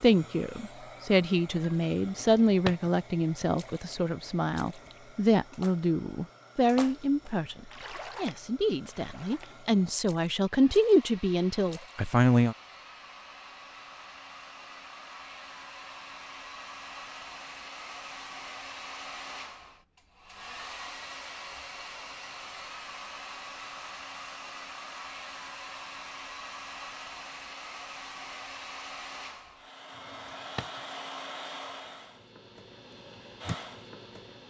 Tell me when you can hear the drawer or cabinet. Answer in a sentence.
You can hear the drawer or cabinet from 2.0 to 2.9 s and from 29.9 to 30.8 s.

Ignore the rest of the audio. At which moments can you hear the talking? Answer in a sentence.
You can hear the talking from 0.0 to 12.6 s.